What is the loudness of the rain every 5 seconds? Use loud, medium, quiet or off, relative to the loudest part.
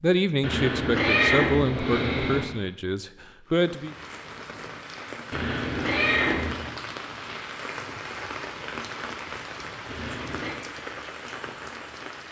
medium, loud, loud.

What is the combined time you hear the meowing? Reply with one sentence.
The meowing can be heard for 4 seconds in total.